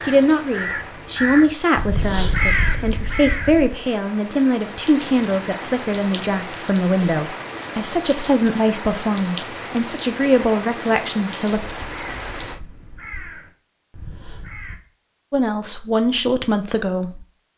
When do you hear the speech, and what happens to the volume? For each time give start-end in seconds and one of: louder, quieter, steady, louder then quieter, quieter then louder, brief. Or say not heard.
0.1-11.6 steady
15.3-17.5 brief.